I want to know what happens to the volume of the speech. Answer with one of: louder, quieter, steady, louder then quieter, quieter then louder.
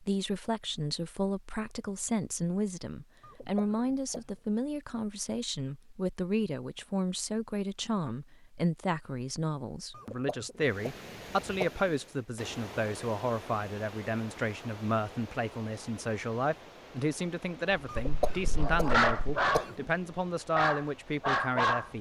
steady.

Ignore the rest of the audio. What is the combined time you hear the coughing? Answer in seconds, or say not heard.
5 s.